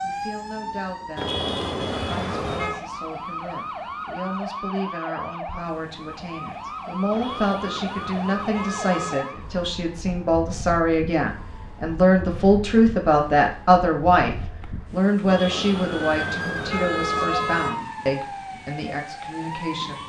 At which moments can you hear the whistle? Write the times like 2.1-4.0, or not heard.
not heard.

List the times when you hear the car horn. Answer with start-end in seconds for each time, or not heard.
1.1-2.8, 7.1-9.4, 15.2-17.8.